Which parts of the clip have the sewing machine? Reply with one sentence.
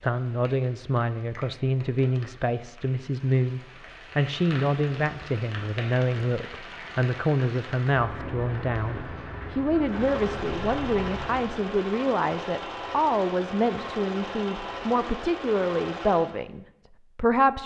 You can hear the sewing machine from 9.8 to 16.4 s.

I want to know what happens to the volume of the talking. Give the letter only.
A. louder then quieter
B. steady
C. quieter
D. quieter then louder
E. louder
B.